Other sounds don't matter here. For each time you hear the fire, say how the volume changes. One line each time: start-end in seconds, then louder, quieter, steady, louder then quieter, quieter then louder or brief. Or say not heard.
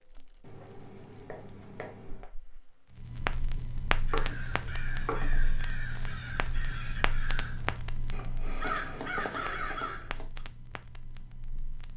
0.0-11.9 louder then quieter.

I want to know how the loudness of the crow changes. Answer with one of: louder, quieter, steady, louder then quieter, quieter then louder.
louder.